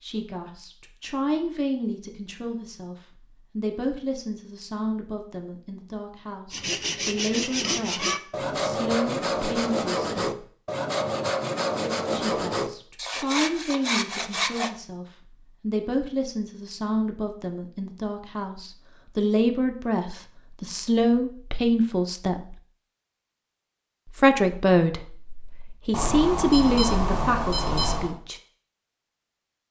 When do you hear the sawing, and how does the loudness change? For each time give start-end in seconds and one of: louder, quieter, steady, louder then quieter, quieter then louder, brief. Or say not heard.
6.5-14.7 steady.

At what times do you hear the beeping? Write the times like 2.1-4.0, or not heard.
25.9-28.1.